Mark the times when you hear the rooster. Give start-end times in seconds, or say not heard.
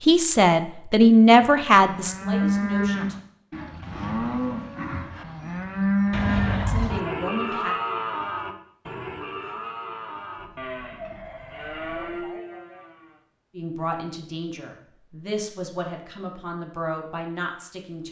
10.3-12.0.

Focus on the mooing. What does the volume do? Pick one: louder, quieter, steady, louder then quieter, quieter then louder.
quieter.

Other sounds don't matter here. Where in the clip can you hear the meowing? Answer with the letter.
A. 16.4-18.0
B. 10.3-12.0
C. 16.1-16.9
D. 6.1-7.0
D.